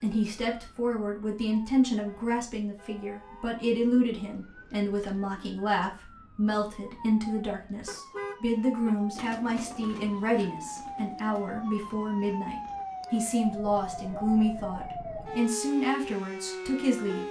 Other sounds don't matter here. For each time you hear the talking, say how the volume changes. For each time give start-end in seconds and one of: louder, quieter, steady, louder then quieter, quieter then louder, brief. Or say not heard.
0.0-17.2 steady.